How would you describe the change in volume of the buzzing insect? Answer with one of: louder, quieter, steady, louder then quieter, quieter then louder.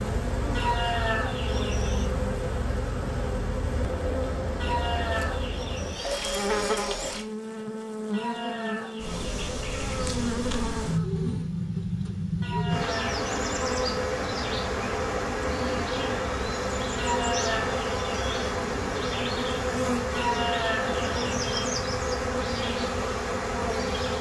steady.